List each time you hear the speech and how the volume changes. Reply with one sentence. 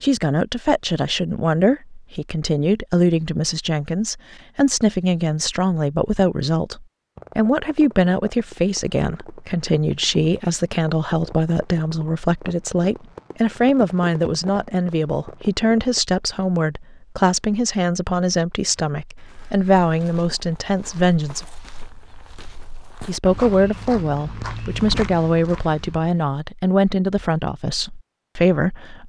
You can hear the speech from 0.0 to 21.4 s, at a steady volume; and from 23.1 to 29.0 s, at a steady volume.